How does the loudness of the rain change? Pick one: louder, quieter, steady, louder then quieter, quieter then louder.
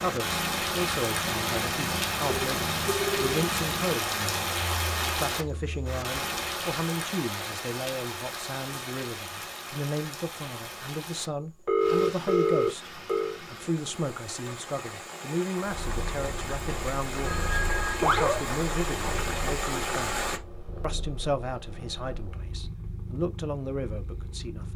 quieter then louder.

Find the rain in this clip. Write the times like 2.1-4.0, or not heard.
0.0-20.4.